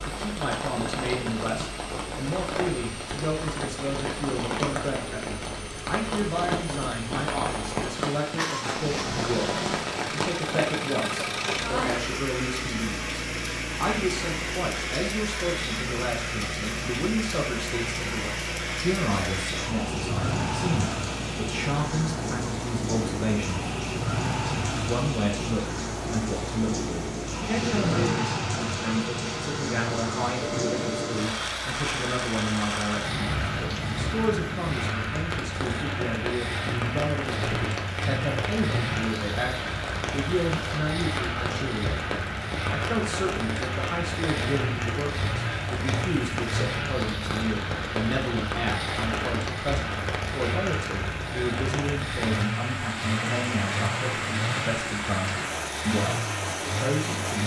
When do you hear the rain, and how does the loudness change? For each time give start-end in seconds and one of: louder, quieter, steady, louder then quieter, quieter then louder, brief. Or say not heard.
0.0-57.4 steady.